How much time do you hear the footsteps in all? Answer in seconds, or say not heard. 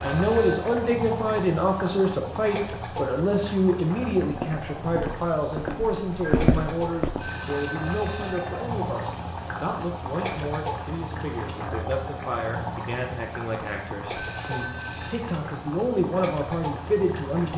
3 s.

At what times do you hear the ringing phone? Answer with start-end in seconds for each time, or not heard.
0.0-0.6, 7.2-8.9, 14.1-15.2.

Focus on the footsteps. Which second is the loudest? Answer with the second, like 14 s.
6 s.